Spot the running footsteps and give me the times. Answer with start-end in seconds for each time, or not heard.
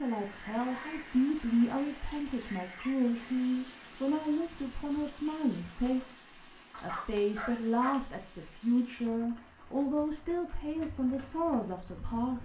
not heard.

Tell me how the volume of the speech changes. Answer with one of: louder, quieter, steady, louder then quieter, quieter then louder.
steady.